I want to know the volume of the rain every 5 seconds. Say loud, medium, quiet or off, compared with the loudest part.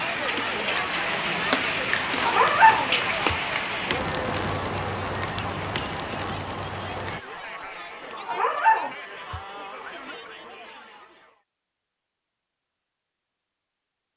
loud, medium, off.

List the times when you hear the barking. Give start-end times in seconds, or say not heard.
2.2-3.4, 8.2-9.4.